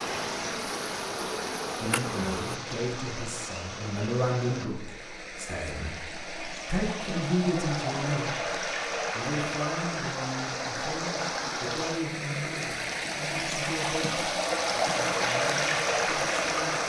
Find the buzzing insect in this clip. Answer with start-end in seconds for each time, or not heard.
0.0-2.6.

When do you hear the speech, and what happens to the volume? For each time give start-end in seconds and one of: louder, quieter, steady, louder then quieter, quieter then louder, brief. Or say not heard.
1.8-16.8 quieter.